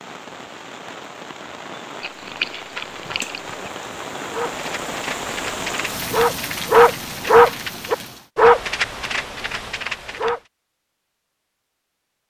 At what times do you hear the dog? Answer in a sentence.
The dog can be heard from 4.3 to 10.4 s.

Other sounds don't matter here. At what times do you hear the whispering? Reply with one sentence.
You can't hear the whispering here.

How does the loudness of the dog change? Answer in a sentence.
The loudness of the dog goes up, then down.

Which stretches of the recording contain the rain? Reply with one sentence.
The rain can be heard from 0.0 to 8.3 s.